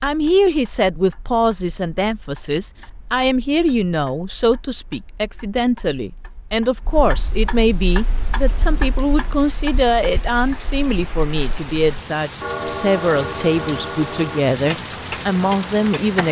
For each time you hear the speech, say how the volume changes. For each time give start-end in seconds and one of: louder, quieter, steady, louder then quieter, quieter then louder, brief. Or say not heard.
0.0-16.2 steady.